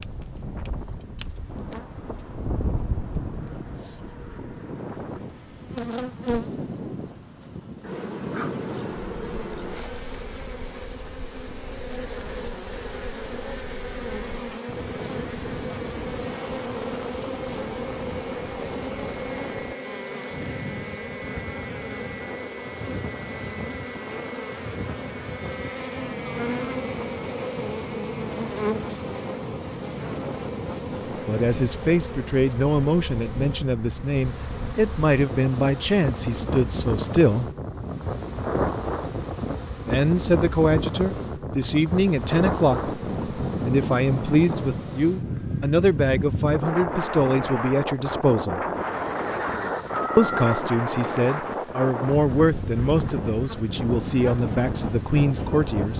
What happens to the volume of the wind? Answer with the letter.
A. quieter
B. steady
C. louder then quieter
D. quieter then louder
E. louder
E.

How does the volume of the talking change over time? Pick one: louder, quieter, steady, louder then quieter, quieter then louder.
steady.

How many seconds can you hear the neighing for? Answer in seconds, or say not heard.
2 s.